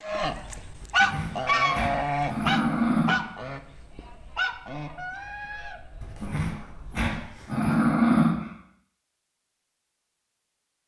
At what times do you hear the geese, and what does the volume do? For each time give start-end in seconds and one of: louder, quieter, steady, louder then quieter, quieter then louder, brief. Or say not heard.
0.0-7.5 quieter.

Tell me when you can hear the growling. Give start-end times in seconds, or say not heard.
0.8-3.2, 6.0-8.5.